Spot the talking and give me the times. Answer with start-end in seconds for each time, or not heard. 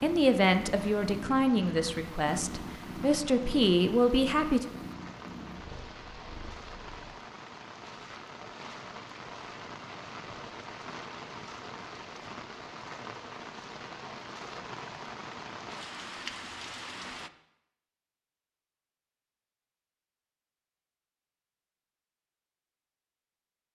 0.0-4.7.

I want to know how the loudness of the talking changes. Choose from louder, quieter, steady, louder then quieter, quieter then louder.
quieter then louder.